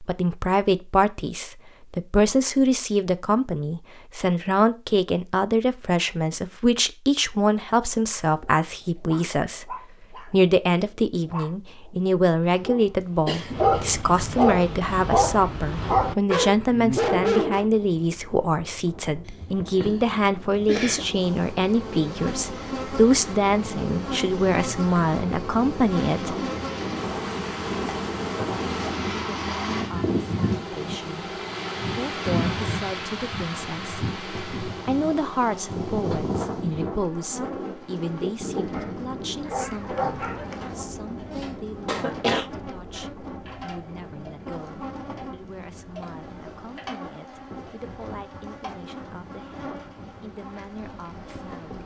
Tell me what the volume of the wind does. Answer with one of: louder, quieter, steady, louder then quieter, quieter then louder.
louder then quieter.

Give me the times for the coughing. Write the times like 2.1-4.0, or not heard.
13.2-14.4, 19.2-21.1, 41.3-42.5.